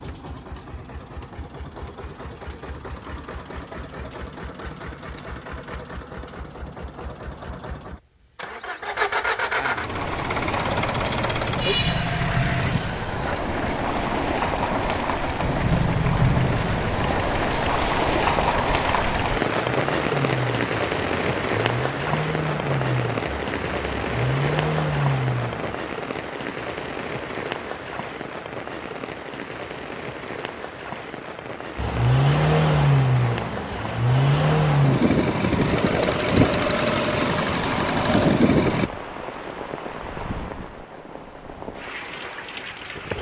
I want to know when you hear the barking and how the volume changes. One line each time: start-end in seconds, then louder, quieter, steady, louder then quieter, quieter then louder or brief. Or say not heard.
not heard.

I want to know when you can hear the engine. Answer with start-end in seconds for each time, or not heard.
0.0-25.8, 31.8-38.9.